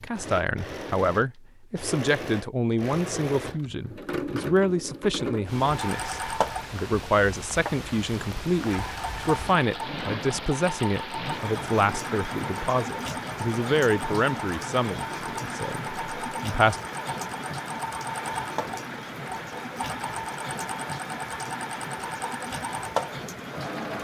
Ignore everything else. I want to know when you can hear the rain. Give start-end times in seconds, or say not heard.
5.5-23.9.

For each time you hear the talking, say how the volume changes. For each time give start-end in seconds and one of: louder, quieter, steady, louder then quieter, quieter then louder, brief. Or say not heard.
0.0-16.8 steady.